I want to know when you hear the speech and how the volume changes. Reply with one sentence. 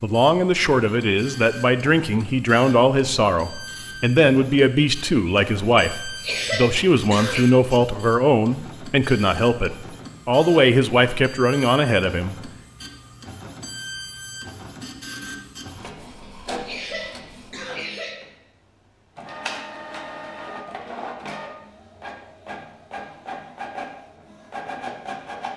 The speech can be heard from 0.0 to 12.3 s, at a steady volume.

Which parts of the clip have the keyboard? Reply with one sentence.
The keyboard can't be heard in this clip.